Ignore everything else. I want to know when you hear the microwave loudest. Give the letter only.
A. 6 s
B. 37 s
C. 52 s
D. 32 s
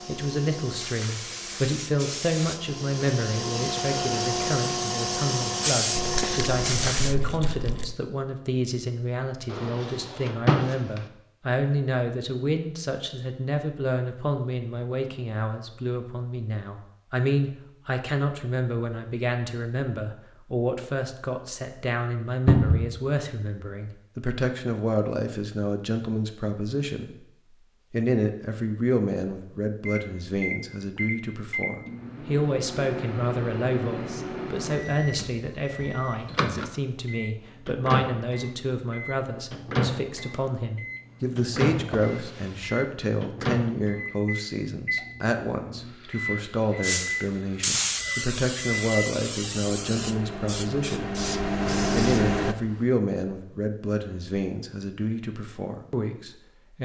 C.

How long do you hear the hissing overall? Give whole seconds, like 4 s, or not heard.
13 s.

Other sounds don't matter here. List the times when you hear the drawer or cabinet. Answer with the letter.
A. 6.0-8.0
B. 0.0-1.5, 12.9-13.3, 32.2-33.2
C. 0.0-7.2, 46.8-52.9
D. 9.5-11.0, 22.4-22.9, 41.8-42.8
D.